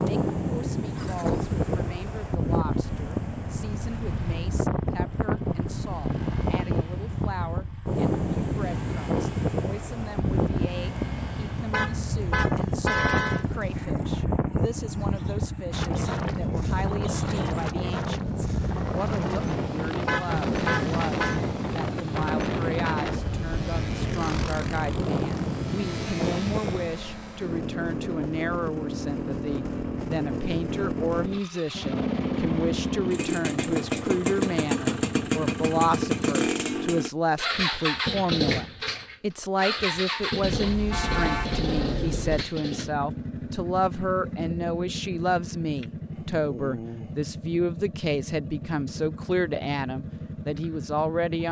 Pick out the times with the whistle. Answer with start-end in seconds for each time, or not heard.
not heard.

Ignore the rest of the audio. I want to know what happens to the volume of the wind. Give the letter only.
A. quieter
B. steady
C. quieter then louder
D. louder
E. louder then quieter
B.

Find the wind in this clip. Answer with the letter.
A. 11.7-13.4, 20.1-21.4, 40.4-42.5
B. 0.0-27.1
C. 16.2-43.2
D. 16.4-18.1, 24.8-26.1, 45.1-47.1
B.